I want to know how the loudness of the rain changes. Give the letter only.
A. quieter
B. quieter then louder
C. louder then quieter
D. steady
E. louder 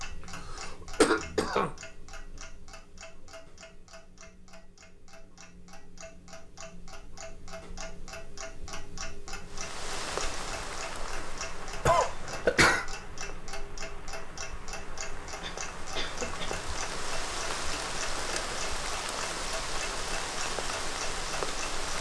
B.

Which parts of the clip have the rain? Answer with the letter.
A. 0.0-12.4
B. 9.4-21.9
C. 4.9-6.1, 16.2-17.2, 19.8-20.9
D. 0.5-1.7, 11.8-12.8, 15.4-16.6
B.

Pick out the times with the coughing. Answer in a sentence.
You can hear the coughing from 0.5 to 1.7 s, from 11.8 to 12.8 s and from 15.4 to 16.6 s.